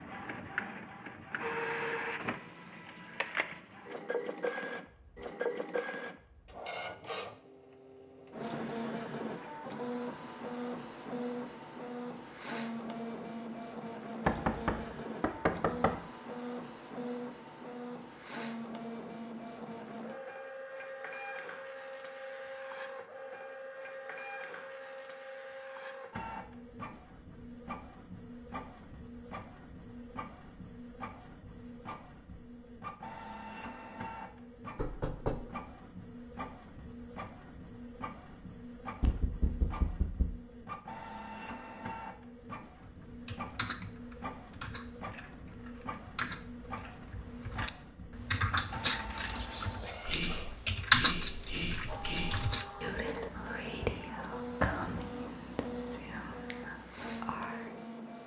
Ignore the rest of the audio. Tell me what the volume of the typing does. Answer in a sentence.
The volume of the typing goes up.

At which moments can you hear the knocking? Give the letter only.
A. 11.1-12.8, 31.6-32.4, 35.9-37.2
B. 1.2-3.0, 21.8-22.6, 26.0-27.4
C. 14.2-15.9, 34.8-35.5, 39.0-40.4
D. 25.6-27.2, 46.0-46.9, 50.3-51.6
C.